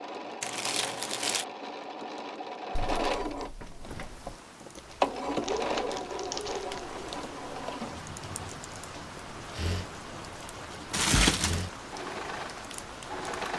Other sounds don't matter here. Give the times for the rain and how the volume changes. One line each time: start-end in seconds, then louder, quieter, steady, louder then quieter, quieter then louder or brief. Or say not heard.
3.8-13.5 louder.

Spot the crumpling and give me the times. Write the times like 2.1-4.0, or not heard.
0.4-1.4, 4.8-7.0, 10.9-11.7.